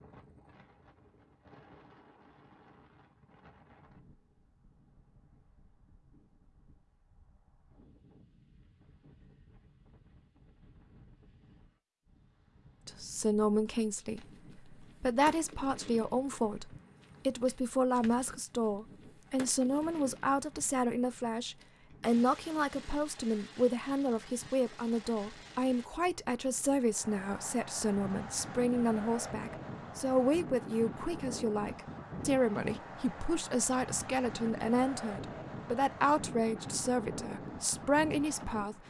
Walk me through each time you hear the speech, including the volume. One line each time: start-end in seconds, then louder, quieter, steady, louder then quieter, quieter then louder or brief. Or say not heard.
12.8-38.8 steady.